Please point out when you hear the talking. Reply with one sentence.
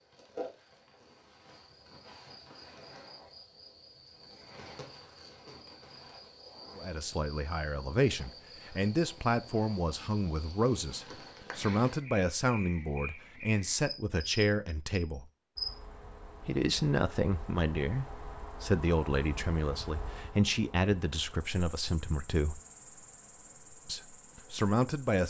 The talking can be heard from 6.8 to 15.3 s, from 16.4 to 22.6 s and from 23.9 to 25.2 s.